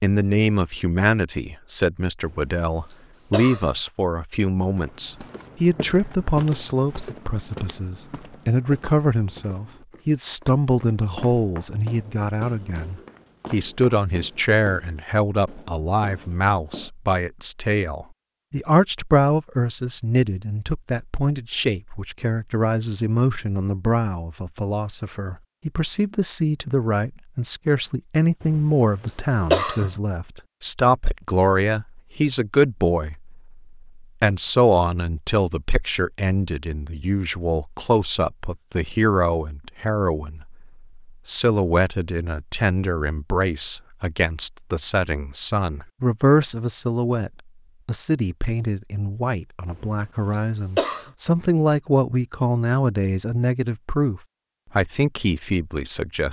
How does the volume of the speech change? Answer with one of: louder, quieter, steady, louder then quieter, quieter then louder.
steady.